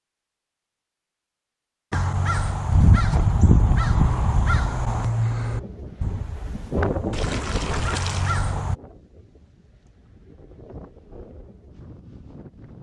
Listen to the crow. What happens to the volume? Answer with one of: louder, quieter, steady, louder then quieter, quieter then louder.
quieter then louder.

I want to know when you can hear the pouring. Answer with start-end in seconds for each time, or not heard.
7.1-8.4.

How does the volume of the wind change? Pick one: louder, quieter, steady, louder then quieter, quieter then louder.
quieter.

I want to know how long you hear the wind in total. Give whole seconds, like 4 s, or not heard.
7 s.